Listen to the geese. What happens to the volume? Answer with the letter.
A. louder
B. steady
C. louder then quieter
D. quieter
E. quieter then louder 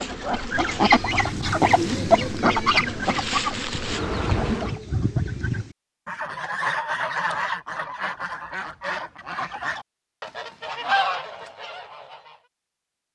D.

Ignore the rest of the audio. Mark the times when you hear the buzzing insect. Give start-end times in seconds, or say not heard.
0.0-4.8.